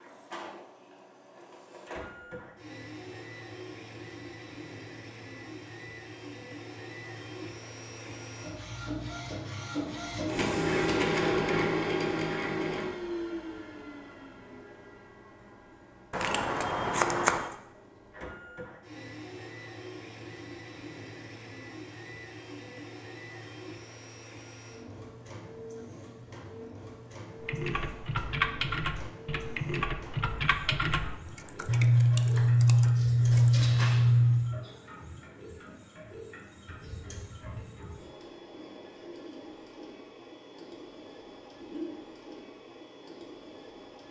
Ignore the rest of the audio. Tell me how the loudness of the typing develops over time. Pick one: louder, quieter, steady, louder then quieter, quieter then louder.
quieter.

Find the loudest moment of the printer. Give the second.
11 s.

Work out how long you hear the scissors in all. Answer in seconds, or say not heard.
4 s.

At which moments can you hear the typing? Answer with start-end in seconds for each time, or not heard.
27.4-33.5.